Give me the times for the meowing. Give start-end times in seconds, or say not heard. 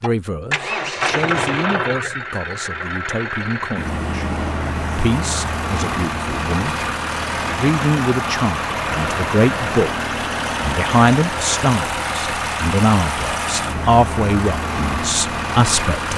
not heard.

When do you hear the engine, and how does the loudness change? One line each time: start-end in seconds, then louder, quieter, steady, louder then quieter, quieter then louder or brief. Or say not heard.
0.0-16.1 steady.